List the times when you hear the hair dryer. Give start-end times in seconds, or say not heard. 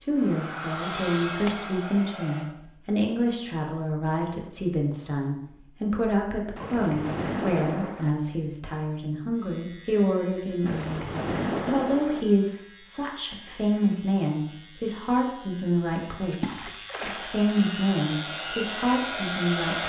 0.0-2.5, 17.1-19.8.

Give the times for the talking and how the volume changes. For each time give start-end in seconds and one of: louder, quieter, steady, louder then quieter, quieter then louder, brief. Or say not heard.
0.0-19.8 steady.